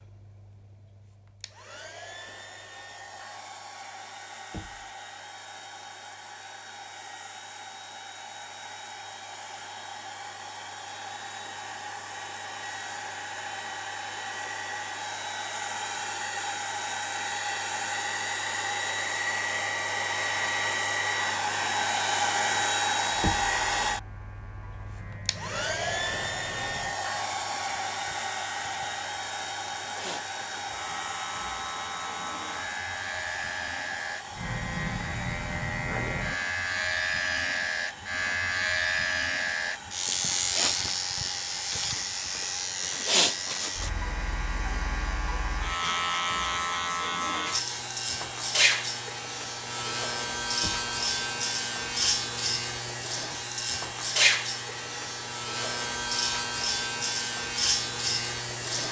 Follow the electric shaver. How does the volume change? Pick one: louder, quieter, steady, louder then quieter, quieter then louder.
louder.